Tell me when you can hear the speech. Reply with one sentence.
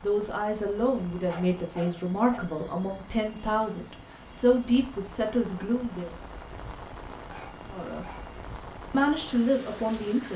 The speech can be heard from 0.0 to 6.1 s, from 7.7 to 8.1 s and from 8.9 to 10.3 s.